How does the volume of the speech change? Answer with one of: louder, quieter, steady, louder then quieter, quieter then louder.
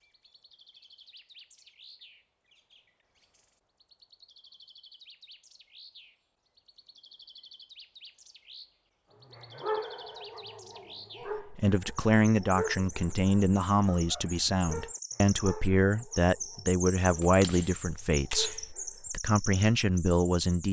steady.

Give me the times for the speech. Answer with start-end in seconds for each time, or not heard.
11.3-20.6.